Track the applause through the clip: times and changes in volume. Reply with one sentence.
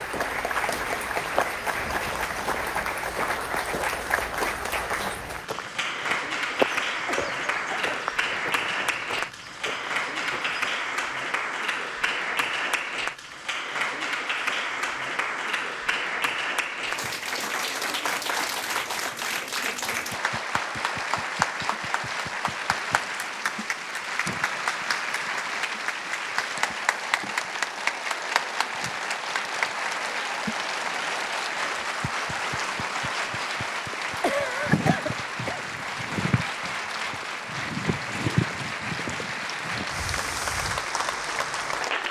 The applause can be heard from 0.0 to 42.0 s, at a steady volume.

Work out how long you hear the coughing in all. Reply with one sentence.
You can hear the coughing for 3 seconds altogether.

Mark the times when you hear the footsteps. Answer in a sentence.
You can hear the footsteps from 0.1 to 10.8 s.